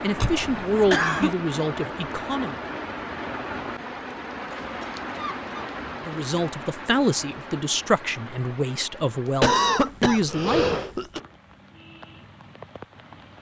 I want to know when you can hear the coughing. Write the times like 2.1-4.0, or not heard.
0.2-1.4, 4.5-5.8, 9.4-11.2.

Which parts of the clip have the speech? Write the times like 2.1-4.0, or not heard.
0.0-2.5, 6.0-10.8.